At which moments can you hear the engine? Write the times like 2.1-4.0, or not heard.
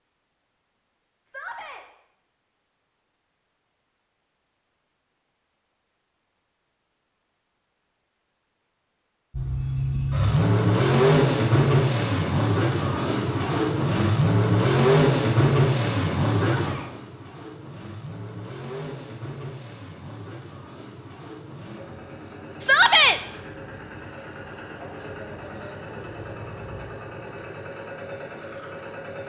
9.3-29.2.